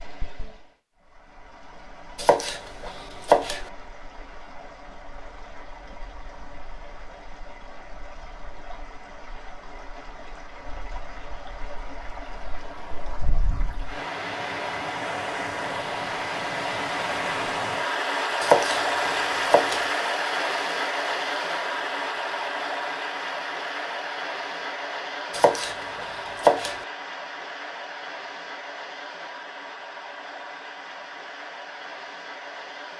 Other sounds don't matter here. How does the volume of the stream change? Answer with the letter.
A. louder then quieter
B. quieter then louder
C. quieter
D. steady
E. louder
A.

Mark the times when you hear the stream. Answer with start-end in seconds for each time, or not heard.
0.0-32.9.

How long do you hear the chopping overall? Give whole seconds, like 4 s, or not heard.
4 s.